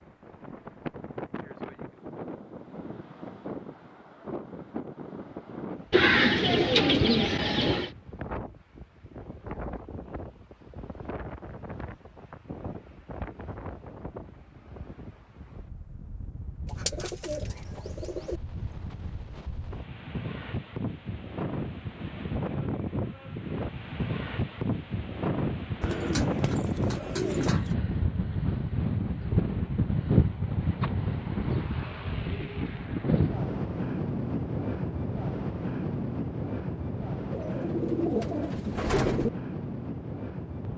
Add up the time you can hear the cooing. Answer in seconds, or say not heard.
8 s.